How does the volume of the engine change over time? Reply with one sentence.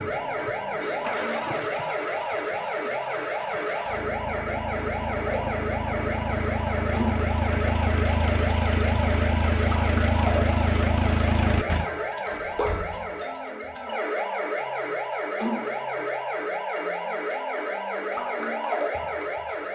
The loudness of the engine goes up.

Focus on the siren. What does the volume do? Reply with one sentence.
The volume of the siren stays about the same.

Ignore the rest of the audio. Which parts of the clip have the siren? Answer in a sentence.
You can hear the siren from 0.0 to 19.7 s.